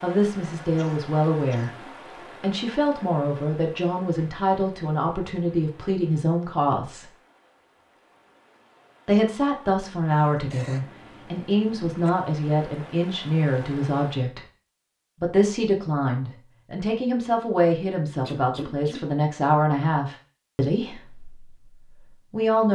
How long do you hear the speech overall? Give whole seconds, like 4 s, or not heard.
20 s.